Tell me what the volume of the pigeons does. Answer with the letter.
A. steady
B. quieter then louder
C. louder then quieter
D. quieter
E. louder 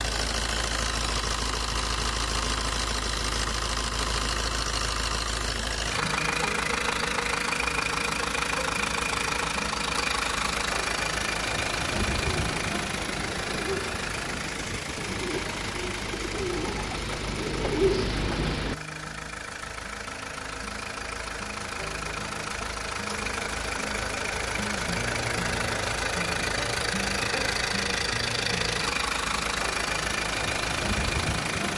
E.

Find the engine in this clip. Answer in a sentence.
You can hear the engine from 0.0 to 31.7 s.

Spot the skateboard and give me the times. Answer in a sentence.
You can't hear the skateboard here.